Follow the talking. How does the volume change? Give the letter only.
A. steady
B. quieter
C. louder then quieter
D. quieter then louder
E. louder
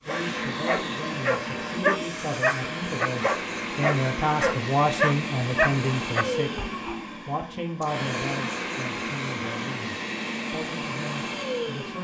C.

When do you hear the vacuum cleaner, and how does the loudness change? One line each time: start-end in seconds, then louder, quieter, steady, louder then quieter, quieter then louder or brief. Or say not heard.
0.0-11.9 steady.